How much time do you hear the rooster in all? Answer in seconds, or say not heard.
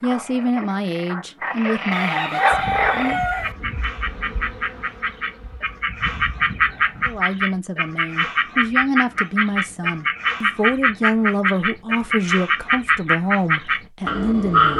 2 s.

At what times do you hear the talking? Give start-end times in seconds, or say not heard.
0.0-3.2, 7.0-14.7.